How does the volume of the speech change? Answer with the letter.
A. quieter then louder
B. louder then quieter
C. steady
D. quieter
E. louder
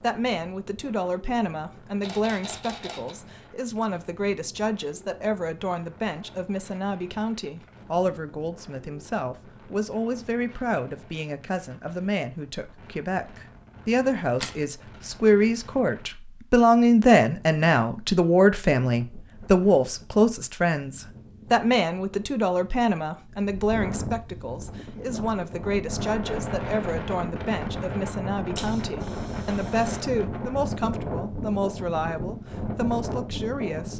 B.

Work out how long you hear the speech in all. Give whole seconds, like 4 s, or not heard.
34 s.